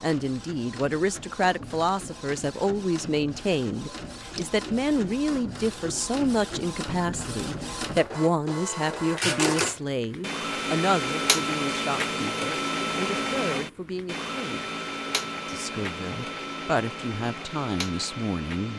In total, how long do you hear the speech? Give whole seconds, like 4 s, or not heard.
18 s.